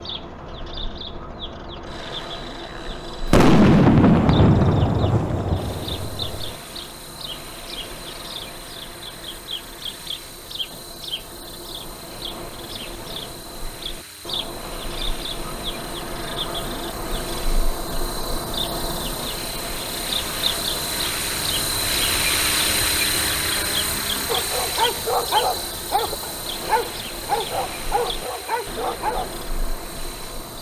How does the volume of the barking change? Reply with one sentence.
The loudness of the barking goes down.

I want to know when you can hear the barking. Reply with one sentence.
You can hear the barking from 24.2 to 29.4 s.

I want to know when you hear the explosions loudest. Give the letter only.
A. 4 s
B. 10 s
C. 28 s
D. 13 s
A.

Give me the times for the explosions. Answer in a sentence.
You can hear the explosions from 3.2 to 6.5 s.